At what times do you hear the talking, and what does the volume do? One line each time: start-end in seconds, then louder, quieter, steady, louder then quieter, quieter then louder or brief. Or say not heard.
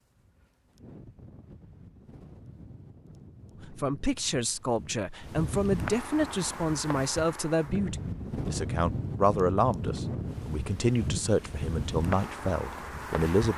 3.6-13.5 steady.